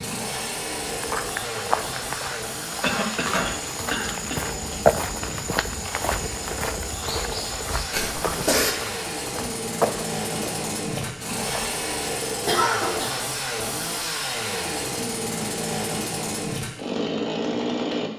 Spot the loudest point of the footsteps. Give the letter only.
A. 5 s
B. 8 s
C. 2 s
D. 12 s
A.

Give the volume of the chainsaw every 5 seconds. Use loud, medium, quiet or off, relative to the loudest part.
medium, medium, loud, loud.